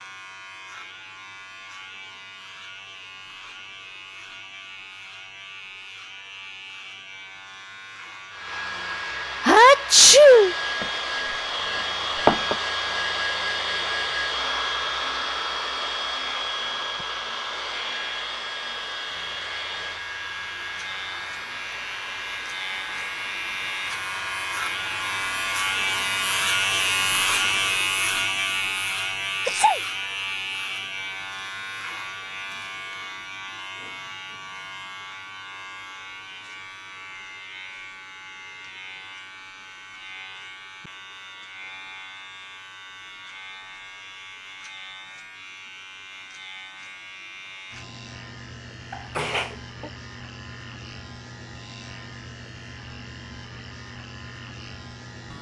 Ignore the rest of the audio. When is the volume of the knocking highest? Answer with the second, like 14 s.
12 s.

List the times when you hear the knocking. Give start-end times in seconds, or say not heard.
10.8-12.6.